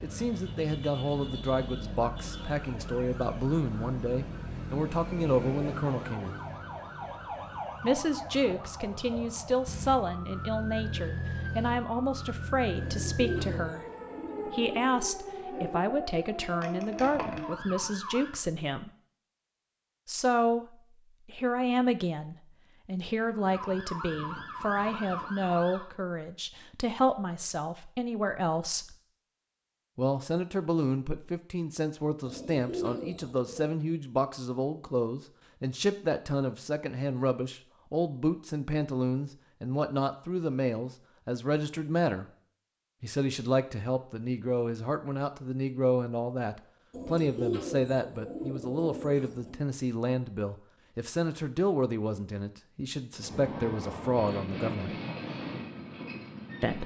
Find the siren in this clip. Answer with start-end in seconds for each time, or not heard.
0.0-18.4, 23.3-25.9.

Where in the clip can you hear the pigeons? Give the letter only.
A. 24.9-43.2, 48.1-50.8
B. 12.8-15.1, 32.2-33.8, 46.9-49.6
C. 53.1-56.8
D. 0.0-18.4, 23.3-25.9
B.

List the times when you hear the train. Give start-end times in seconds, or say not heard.
53.1-56.8.